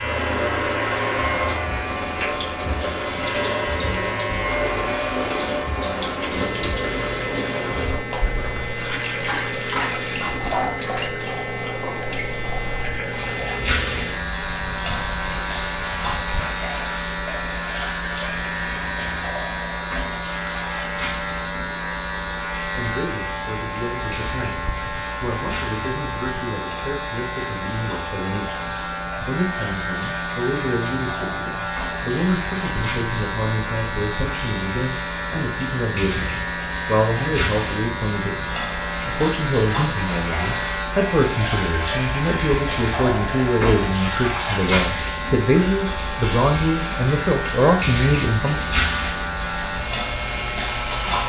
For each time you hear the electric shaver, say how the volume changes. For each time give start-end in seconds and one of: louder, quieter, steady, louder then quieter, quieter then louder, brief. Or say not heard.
0.0-51.2 steady.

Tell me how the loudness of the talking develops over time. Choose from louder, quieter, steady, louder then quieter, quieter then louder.
louder.